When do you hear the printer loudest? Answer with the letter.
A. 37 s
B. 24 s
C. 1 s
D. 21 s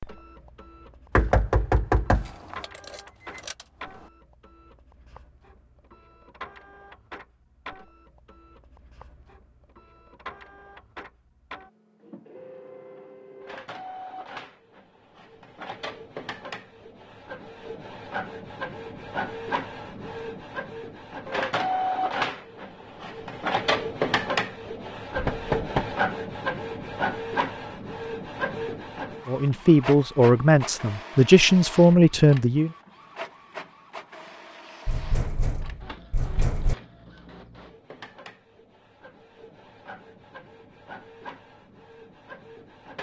B.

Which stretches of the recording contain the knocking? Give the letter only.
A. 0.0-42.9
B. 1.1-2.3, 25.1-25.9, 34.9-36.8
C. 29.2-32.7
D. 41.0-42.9
B.